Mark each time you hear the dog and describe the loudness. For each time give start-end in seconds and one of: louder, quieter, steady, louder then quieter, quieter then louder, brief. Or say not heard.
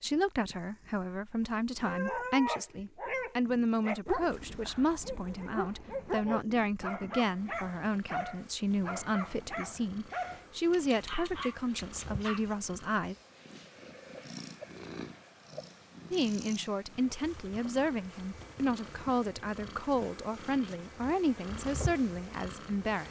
1.9-12.6 quieter.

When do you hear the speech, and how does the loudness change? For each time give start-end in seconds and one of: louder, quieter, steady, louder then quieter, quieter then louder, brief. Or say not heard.
0.0-13.2 steady
16.1-23.0 steady.